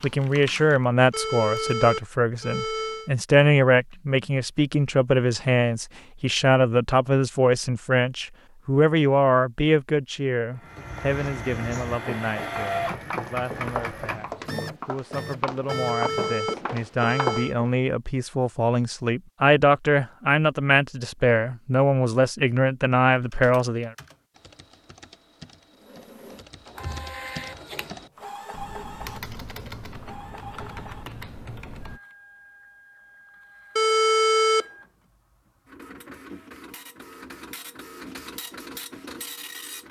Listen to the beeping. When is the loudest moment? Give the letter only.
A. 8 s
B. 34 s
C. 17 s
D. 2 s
B.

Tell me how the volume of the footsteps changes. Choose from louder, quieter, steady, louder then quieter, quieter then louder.
louder.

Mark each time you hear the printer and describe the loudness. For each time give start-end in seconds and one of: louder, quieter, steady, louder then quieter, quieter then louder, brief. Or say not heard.
10.5-16.4 louder then quieter
25.8-39.8 quieter then louder.